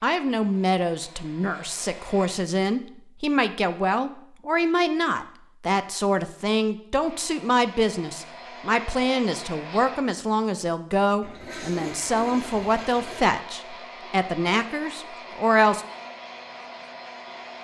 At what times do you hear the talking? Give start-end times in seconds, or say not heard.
0.0-15.8.